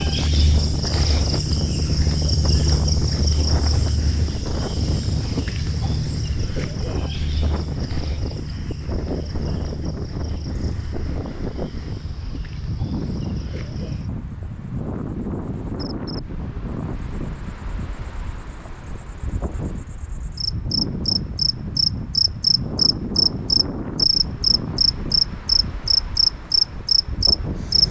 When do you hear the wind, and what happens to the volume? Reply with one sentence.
The wind can be heard from 0.0 to 27.8 s, at a steady volume.